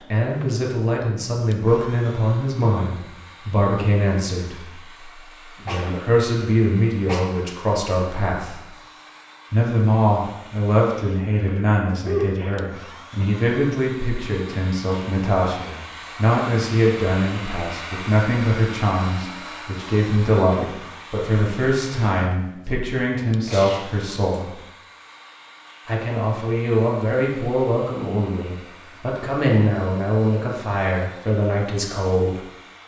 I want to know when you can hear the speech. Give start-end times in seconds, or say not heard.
0.0-8.7, 9.5-24.6, 25.9-32.4.